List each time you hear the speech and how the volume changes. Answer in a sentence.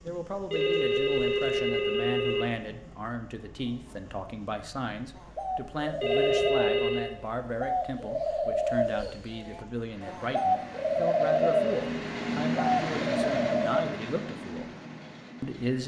The speech can be heard from 0.0 to 14.7 s, at a steady volume; and briefly from 15.4 to 15.8 s.